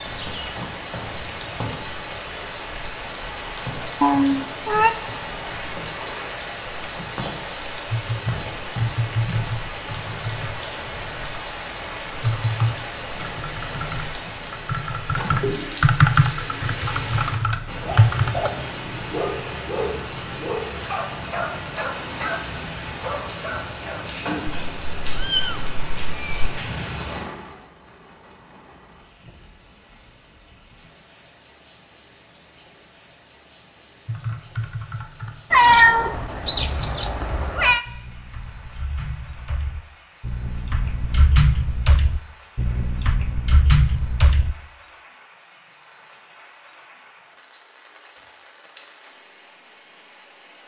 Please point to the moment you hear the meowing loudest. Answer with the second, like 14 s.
36 s.